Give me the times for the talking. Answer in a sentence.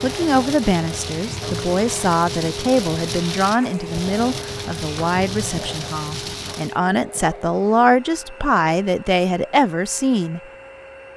The talking can be heard from 0.0 to 10.4 s.